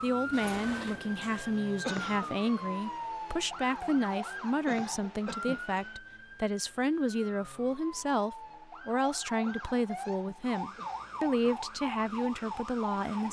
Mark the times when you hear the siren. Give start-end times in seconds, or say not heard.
0.0-13.2.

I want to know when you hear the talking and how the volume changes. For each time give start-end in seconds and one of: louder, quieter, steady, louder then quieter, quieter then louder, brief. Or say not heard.
0.0-13.2 steady.